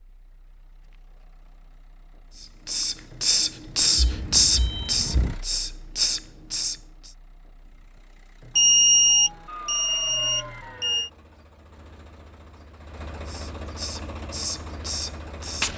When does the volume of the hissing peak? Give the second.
4 s.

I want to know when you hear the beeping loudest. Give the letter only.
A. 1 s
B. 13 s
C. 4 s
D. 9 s
D.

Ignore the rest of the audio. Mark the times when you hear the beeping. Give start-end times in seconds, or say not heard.
4.0-5.4, 8.6-11.1.